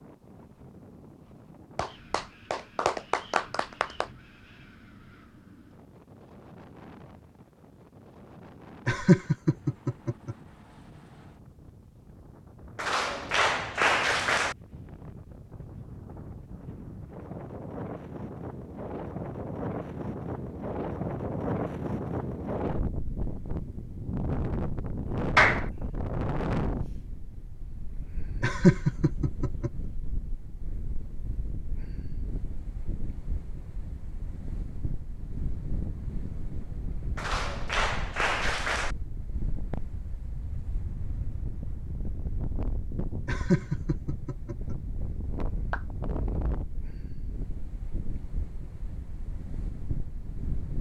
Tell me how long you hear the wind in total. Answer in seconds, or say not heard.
51 s.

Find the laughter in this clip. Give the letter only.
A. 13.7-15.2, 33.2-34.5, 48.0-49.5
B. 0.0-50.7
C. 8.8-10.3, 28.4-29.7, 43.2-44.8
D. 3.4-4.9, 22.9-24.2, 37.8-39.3
C.